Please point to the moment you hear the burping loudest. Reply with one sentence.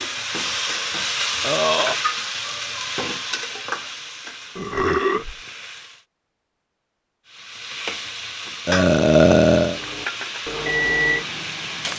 The volume of the burping peaks at 9 seconds.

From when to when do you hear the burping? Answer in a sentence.
The burping can be heard from 1.4 to 1.9 s, from 4.5 to 5.3 s and from 8.7 to 9.8 s.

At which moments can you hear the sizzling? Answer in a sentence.
You can hear the sizzling from 0.0 to 6.0 s and from 7.2 to 11.9 s.